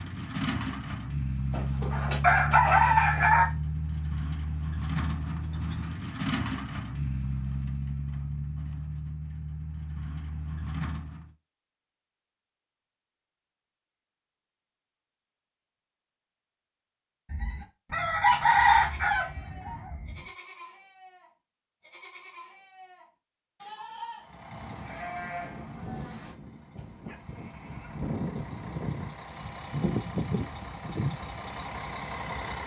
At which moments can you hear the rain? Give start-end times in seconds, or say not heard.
not heard.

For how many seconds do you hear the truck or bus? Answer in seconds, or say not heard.
20 s.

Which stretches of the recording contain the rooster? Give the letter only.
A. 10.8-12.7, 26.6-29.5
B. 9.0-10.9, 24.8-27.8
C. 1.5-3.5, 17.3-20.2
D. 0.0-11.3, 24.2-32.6
C.